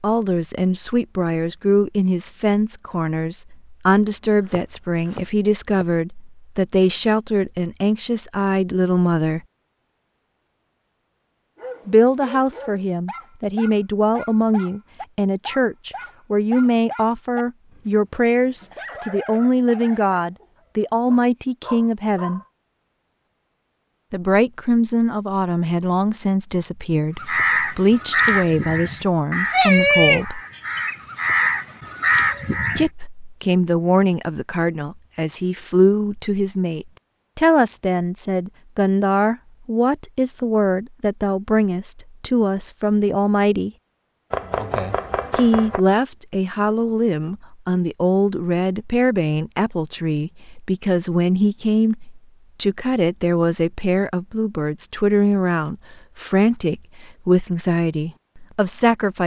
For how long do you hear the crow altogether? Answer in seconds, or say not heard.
6 s.